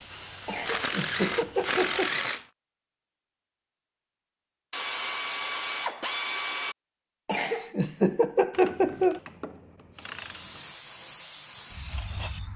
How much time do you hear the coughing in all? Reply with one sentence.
You can hear the coughing for 4 seconds altogether.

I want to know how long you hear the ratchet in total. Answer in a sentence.
You can hear the ratchet for 6 seconds altogether.